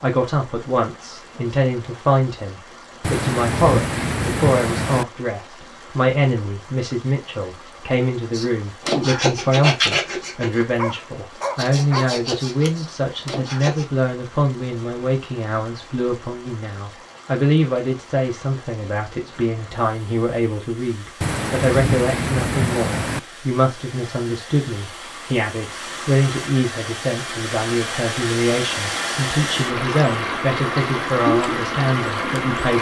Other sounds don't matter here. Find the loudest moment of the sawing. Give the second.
10 s.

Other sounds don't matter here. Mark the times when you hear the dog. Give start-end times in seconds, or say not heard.
10.8-12.2.